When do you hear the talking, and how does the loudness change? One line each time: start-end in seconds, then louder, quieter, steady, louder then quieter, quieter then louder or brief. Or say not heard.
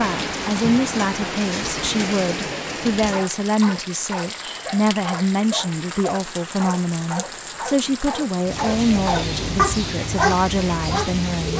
0.0-11.5 steady.